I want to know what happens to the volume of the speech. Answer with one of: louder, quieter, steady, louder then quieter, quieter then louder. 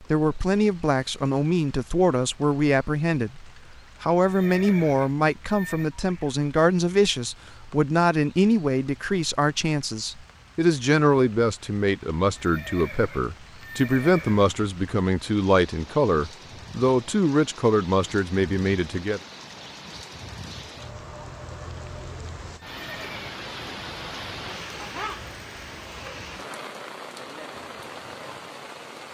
steady.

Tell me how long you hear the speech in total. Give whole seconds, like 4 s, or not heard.
19 s.